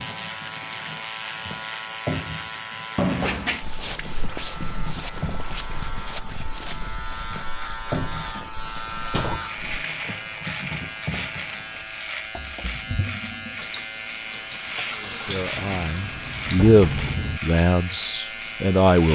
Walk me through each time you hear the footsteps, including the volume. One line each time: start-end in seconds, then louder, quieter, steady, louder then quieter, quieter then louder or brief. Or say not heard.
3.6-9.8 quieter.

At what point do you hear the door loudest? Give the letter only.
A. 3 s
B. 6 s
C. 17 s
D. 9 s
A.